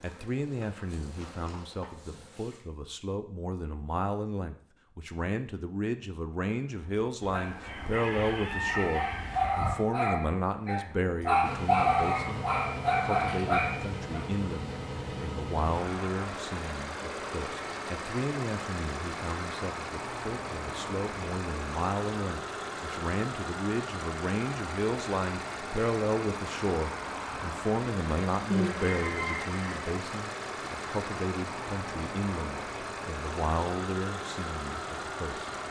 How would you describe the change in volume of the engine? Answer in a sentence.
The volume of the engine stays about the same.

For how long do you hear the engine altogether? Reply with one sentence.
The engine can be heard for 24 seconds in total.